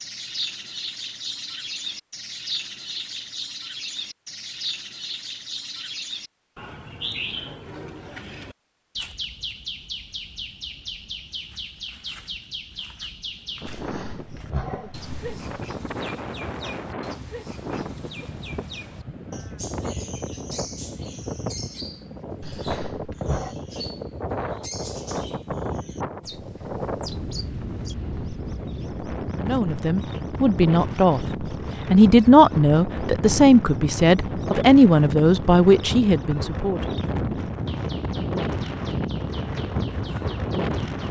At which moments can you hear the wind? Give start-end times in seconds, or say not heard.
13.5-41.0.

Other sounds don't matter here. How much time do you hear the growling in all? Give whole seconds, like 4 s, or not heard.
3 s.